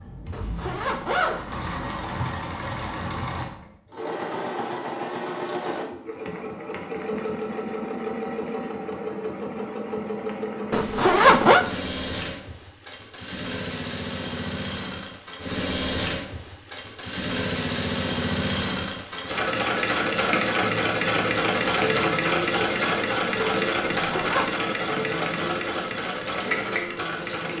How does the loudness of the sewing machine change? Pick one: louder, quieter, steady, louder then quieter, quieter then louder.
louder.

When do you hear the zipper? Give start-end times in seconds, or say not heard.
0.3-1.9, 10.7-11.7, 23.9-24.5.